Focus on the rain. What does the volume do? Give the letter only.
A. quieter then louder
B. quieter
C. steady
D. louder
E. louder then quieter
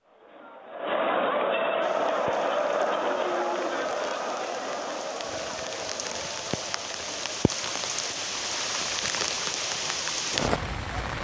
D.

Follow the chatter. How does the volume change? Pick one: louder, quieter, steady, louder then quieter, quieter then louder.
quieter.